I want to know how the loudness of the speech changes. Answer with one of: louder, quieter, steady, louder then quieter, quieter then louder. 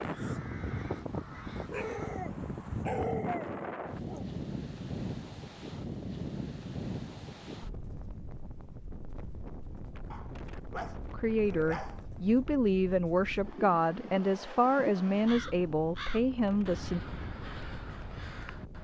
steady.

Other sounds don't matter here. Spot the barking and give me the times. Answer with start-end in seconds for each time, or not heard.
1.7-4.3, 10.1-12.1.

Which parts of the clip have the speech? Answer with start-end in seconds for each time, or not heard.
11.1-17.0.